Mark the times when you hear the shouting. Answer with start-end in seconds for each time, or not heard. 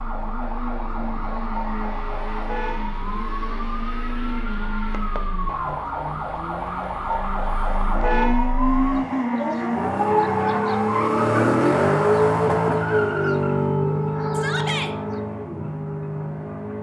14.3-14.9.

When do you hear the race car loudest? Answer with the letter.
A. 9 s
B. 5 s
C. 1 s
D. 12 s
D.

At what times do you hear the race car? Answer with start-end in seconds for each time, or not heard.
0.0-16.7.